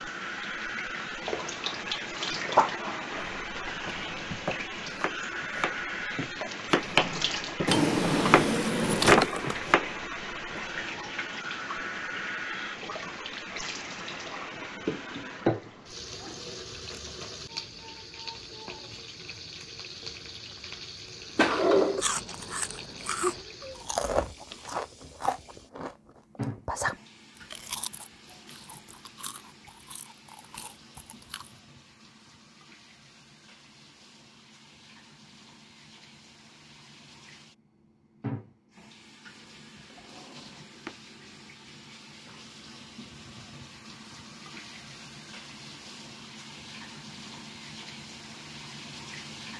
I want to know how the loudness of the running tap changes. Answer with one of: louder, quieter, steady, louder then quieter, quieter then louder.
quieter.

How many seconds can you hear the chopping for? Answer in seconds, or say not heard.
8 s.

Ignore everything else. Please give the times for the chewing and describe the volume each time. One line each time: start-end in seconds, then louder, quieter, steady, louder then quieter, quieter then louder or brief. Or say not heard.
21.9-31.6 quieter.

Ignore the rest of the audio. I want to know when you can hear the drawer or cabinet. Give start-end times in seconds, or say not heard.
7.7-9.6, 21.4-22.1, 39.9-41.0.